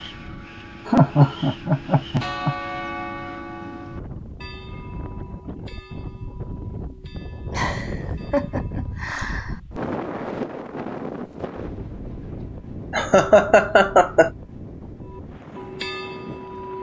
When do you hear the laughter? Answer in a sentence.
You can hear the laughter from 0.8 to 2.5 s, from 7.5 to 9.6 s and from 12.9 to 14.3 s.